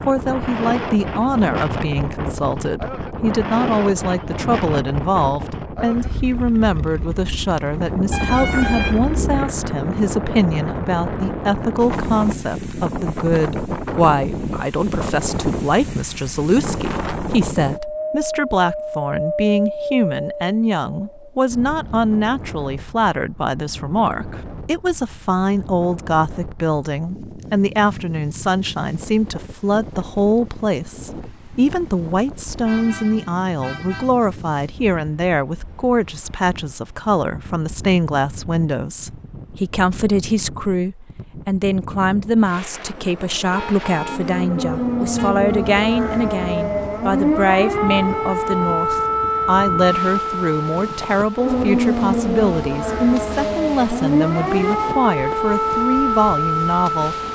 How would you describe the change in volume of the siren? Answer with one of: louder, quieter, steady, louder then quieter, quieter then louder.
steady.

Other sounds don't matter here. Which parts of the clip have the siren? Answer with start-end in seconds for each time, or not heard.
44.0-57.3.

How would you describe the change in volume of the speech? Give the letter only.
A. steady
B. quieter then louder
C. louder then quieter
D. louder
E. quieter
A.